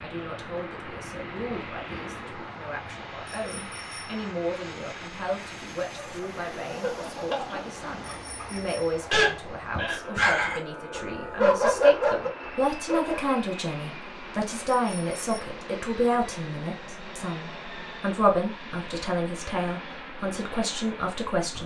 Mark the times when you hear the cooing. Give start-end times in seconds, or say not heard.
0.1-2.5.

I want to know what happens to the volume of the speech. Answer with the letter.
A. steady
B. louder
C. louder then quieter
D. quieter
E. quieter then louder
B.